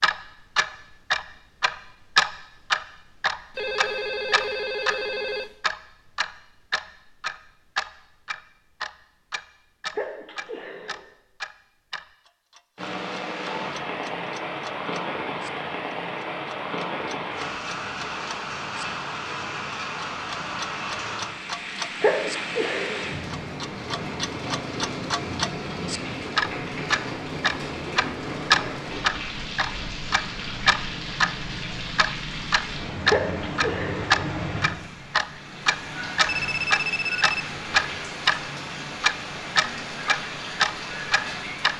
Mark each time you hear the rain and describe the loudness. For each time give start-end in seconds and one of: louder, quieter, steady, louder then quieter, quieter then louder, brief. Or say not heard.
12.8-41.7 steady.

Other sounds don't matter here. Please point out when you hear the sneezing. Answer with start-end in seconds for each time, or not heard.
9.9-11.0, 22.0-23.1, 33.0-34.1.